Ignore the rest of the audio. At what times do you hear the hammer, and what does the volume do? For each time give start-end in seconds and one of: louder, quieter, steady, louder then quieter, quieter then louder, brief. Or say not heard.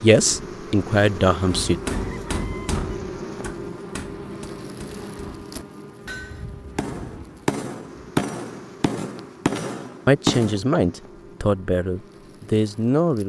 1.4-10.8 quieter then louder.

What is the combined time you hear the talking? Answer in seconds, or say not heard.
5 s.